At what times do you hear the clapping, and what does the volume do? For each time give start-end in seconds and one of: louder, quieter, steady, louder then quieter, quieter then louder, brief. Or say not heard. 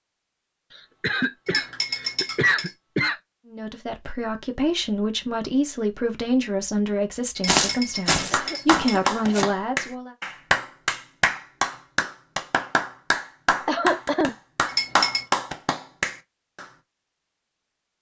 8.3-16.6 steady.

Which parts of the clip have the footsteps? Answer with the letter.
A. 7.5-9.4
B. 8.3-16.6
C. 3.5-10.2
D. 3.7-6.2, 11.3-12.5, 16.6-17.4
A.